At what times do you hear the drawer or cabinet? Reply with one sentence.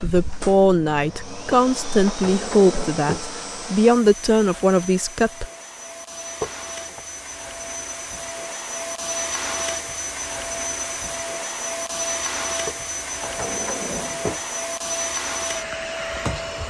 You can hear the drawer or cabinet from 1.5 to 3.2 s, from 6.4 to 7.0 s and from 12.7 to 14.4 s.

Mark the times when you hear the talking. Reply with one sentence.
You can hear the talking from 0.0 to 5.5 s.